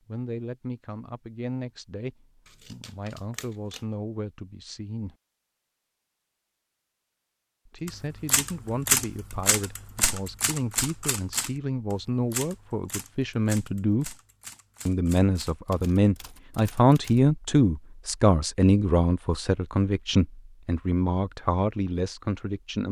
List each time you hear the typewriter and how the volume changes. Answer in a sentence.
You can hear the typewriter from 7.8 to 17.2 s, getting quieter.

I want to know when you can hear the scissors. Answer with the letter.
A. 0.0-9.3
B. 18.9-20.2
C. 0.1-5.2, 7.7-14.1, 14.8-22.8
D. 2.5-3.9
D.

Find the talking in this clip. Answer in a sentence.
The talking can be heard from 0.1 to 5.2 s, from 7.7 to 14.1 s and from 14.8 to 22.8 s.